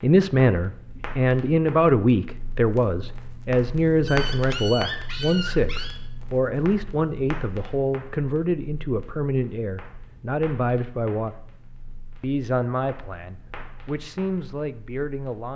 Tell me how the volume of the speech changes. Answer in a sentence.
The loudness of the speech goes down.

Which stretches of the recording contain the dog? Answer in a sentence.
You can hear the dog from 4.0 to 6.0 s.